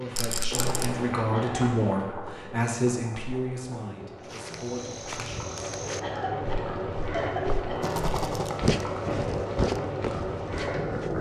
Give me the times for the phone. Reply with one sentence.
You can't hear the phone here.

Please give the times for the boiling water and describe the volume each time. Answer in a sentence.
The boiling water can be heard from 0.0 to 11.1 s, getting quieter then louder.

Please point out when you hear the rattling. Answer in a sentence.
The rattling can be heard from 0.1 to 0.9 s and from 7.8 to 8.6 s.